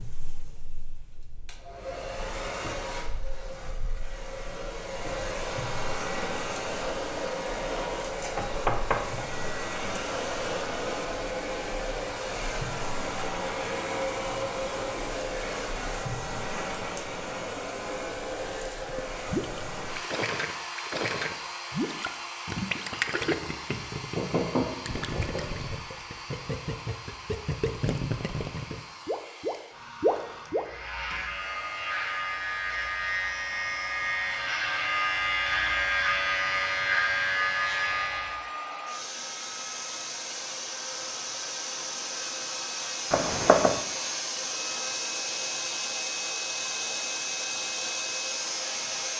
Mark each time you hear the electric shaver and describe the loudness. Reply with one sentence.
The electric shaver can be heard from 30.4 to 38.5 s, getting louder.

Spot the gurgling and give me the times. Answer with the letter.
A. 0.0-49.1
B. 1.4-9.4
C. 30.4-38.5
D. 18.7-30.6
D.